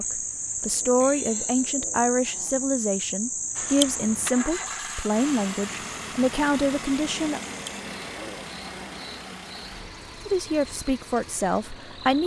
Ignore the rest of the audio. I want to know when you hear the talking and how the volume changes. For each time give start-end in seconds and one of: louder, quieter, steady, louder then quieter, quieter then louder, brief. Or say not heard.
0.0-7.4 steady
10.2-12.2 brief.